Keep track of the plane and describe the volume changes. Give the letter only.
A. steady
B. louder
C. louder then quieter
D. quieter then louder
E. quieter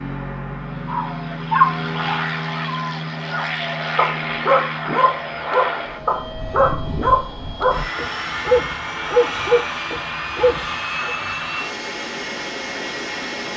A.